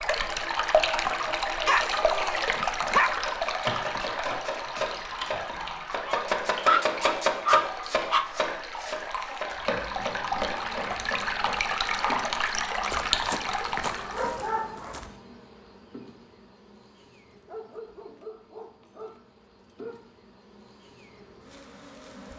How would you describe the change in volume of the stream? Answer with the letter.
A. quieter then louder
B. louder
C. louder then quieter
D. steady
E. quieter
A.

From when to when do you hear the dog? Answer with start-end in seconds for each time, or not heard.
1.6-3.1, 6.0-8.3, 12.9-15.1, 17.2-20.1.